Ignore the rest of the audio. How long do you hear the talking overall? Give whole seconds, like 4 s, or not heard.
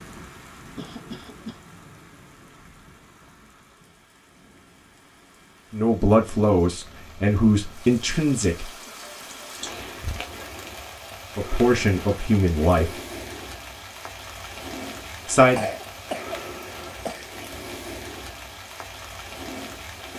5 s.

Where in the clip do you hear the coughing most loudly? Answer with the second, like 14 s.
16 s.